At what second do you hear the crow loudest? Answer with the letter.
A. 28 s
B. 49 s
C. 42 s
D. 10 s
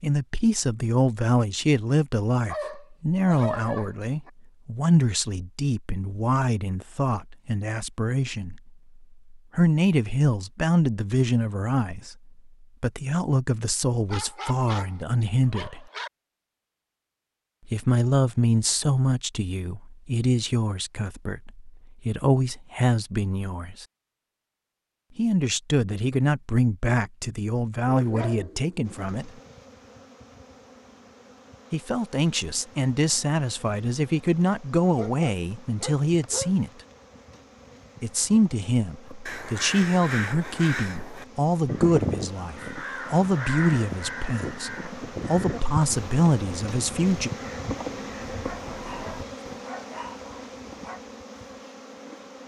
C.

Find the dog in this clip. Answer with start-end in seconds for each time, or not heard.
2.5-4.3, 14.1-16.1, 27.9-28.9, 34.9-36.5, 48.4-51.0.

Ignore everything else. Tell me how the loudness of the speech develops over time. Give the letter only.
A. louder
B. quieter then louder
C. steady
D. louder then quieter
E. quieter
C.